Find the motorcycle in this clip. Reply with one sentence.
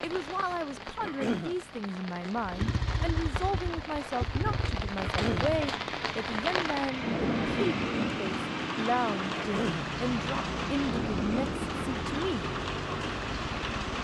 You can hear the motorcycle from 2.4 to 13.9 s.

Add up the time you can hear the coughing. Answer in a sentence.
The coughing can be heard for 2 seconds in total.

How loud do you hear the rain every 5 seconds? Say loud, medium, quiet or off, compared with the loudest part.
medium, loud, loud.